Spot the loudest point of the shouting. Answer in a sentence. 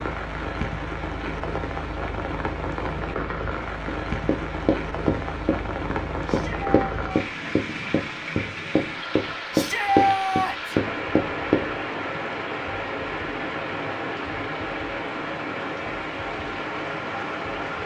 The loudest moment of the shouting is at 10 seconds.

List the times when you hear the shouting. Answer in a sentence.
You can hear the shouting from 6.2 to 7.2 s and from 9.5 to 10.8 s.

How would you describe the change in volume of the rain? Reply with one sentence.
The loudness of the rain stays about the same.